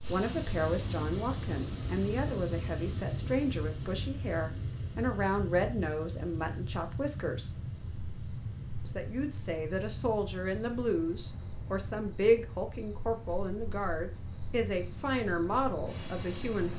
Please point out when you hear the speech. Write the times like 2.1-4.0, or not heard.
0.0-7.5, 8.8-16.7.